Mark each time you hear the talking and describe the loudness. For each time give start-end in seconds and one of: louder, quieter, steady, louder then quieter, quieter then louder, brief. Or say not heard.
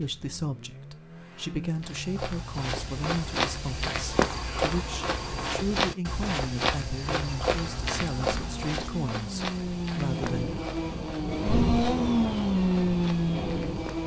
0.0-10.5 steady.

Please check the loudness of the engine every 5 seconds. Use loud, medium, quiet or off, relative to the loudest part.
quiet, medium, loud.